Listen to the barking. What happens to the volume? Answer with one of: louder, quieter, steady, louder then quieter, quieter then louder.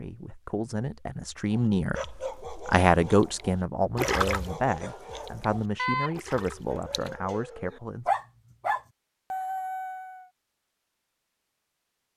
louder.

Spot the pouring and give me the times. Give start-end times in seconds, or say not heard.
4.0-4.5, 6.2-7.1.